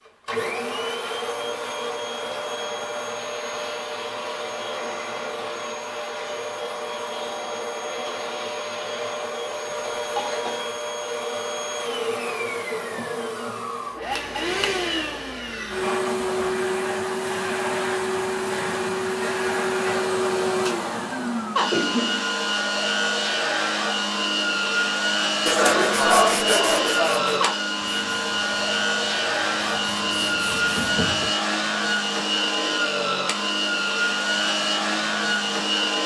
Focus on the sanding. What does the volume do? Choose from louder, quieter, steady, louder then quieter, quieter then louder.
quieter then louder.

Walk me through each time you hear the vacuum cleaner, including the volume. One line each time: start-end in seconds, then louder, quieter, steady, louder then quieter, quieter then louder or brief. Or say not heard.
0.1-36.0 louder.